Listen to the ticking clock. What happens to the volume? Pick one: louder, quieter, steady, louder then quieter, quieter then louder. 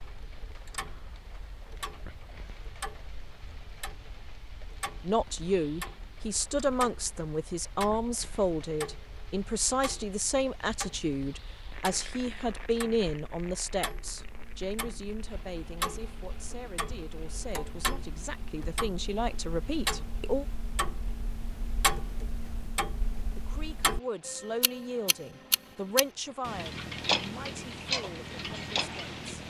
louder.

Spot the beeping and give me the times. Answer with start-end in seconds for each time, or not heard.
not heard.